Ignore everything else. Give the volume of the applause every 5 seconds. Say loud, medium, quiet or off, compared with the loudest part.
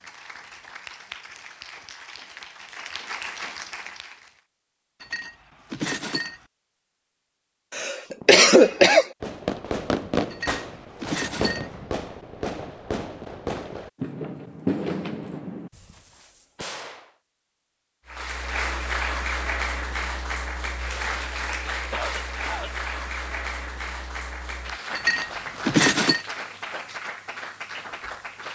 medium, off, off, loud, loud, medium.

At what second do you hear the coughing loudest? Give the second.
8 s.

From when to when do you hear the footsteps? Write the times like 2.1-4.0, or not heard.
not heard.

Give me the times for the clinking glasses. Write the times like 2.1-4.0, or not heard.
5.0-6.4, 10.3-11.7, 24.9-26.2.